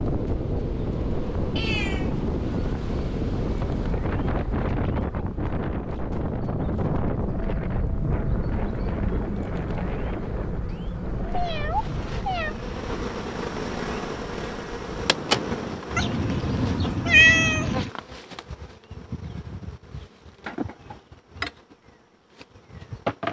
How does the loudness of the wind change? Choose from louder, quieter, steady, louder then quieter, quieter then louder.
quieter.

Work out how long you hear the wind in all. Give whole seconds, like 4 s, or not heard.
16 s.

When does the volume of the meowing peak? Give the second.
17 s.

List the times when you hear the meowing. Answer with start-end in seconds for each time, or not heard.
1.6-2.1, 10.7-12.6, 15.9-17.9.